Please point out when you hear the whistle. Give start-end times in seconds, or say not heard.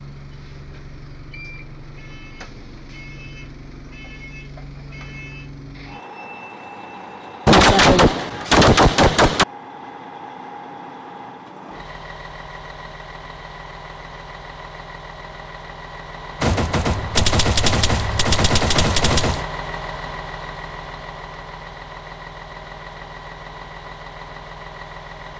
not heard.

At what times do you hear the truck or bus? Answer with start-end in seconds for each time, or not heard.
0.0-25.3.